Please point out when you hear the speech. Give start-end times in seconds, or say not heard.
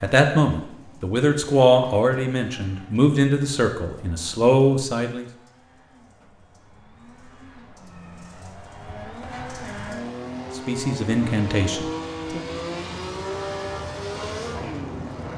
0.0-5.2, 10.6-12.4.